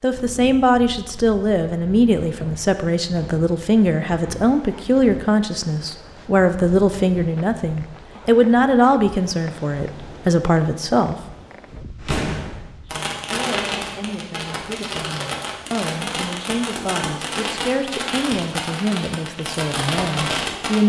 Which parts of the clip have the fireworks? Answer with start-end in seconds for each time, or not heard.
11.9-20.8.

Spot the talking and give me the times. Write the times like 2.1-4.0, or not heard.
0.0-11.2, 12.8-20.8.